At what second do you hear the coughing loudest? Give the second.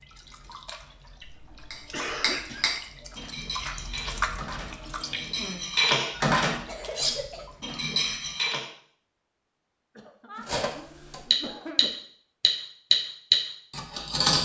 2 s.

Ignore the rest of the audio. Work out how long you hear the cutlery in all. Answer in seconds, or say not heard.
11 s.